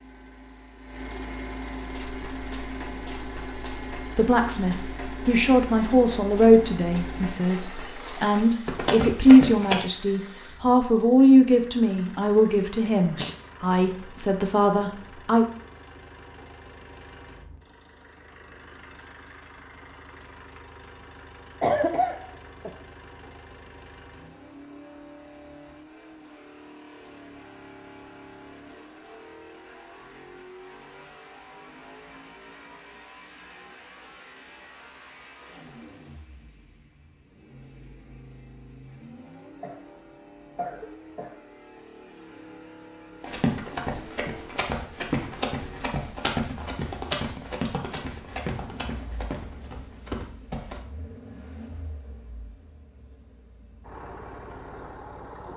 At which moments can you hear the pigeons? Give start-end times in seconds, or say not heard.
not heard.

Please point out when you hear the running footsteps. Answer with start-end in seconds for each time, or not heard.
1.9-9.9, 43.2-50.8.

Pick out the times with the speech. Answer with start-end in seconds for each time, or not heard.
4.0-15.4.